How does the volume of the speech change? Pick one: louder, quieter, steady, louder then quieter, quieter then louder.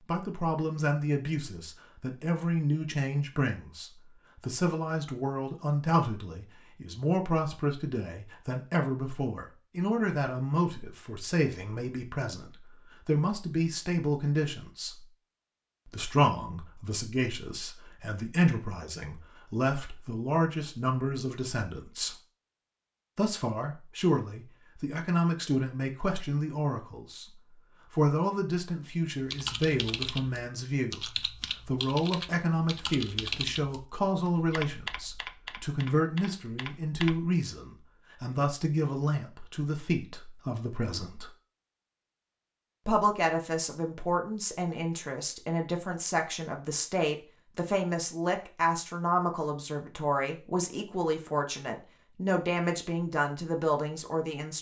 steady.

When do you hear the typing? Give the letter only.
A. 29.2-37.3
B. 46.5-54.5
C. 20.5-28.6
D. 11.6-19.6
A.